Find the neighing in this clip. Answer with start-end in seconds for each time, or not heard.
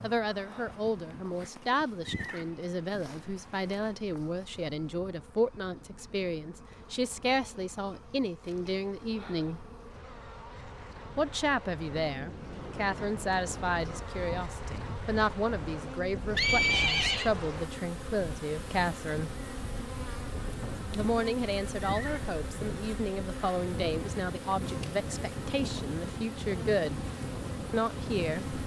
2.0-3.0, 16.3-17.3, 21.8-22.9.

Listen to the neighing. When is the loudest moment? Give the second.
17 s.